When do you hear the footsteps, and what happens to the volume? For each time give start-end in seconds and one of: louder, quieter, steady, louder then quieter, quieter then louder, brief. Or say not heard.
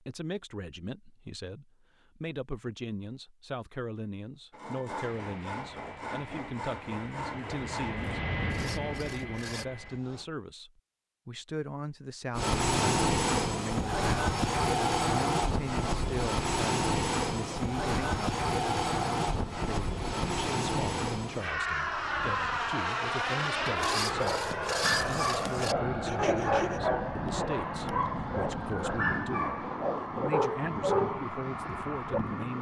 not heard.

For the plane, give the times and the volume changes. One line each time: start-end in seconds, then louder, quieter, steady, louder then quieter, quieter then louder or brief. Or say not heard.
5.0-10.3 louder then quieter
12.3-32.5 quieter.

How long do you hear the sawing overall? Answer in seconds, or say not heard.
8 s.